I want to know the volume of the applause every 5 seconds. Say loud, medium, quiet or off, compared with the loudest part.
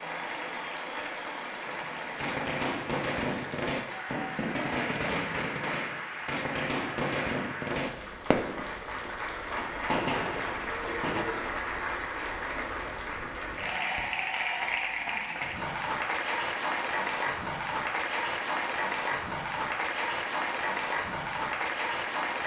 medium, medium, loud, loud, loud.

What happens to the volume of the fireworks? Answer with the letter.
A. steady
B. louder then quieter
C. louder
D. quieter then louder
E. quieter
A.